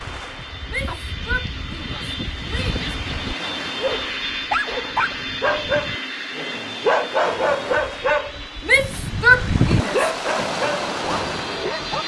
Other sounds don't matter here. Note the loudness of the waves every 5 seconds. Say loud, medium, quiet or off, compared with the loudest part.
medium, loud, loud.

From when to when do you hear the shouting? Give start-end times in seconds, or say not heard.
0.7-2.9, 8.7-10.1.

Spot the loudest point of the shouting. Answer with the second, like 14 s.
9 s.